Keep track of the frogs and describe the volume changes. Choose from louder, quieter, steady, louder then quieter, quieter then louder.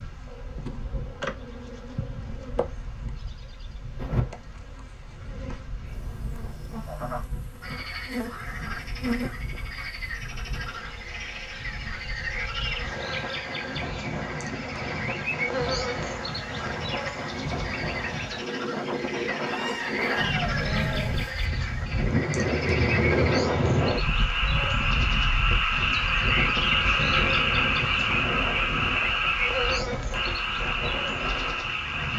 louder.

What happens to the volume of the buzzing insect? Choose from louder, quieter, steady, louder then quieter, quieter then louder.
louder.